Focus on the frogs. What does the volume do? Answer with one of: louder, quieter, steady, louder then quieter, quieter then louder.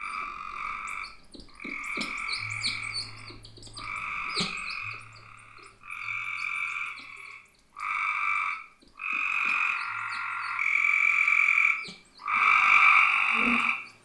louder.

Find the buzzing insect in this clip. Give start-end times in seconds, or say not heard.
not heard.